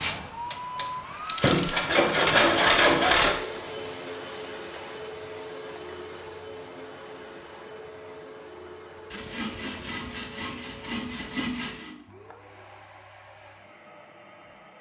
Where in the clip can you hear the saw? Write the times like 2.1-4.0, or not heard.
1.4-3.4, 9.1-11.9.